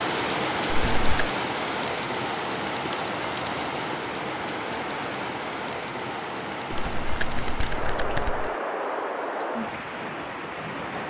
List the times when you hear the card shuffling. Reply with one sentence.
You can hear the card shuffling from 0.7 to 1.3 s and from 6.7 to 8.5 s.